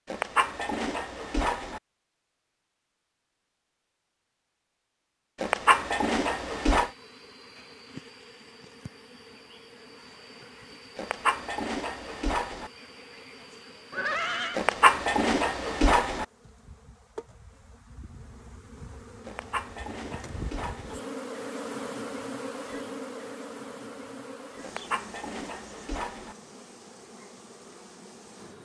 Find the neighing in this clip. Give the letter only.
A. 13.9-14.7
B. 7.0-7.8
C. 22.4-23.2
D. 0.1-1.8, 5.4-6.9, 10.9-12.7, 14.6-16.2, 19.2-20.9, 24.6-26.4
A.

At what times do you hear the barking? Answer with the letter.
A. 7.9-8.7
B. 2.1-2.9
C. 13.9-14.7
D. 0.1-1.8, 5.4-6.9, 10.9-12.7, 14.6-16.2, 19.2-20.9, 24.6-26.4
D.